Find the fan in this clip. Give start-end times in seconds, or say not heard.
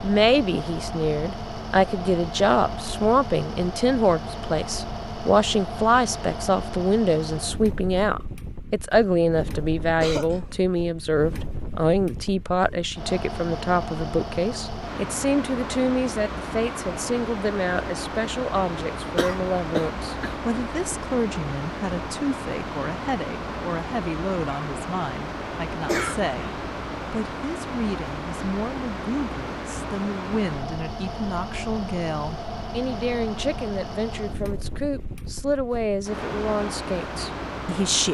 0.0-38.0.